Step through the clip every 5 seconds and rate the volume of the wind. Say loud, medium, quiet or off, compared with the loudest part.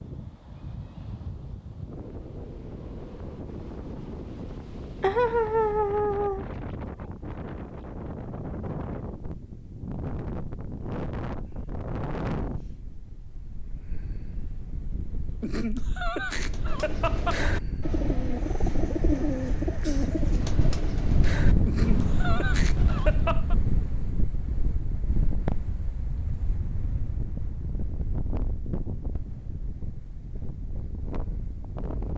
medium, medium, medium, medium, loud, medium, medium.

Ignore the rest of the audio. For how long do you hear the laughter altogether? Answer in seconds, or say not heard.
5 s.